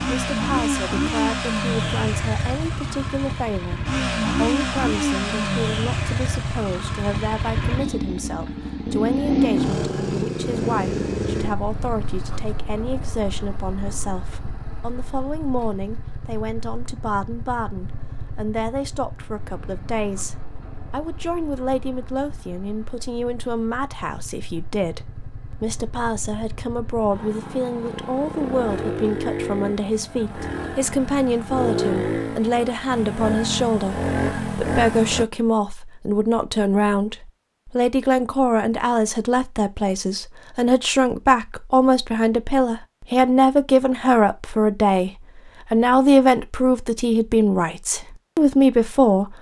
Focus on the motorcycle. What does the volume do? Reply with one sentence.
The loudness of the motorcycle goes down, then up.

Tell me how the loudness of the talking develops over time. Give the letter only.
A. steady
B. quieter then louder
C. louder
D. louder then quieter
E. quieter
C.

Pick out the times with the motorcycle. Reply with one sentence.
The motorcycle can be heard from 0.0 to 35.2 s.